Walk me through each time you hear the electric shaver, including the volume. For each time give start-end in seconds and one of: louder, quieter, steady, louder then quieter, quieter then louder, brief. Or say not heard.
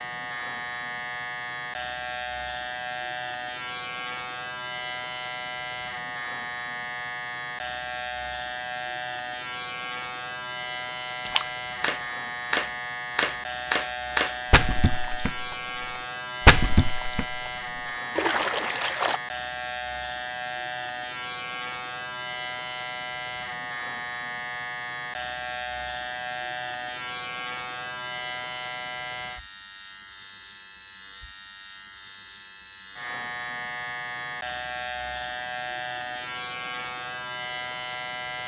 0.0-38.4 steady.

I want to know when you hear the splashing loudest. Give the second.
17 s.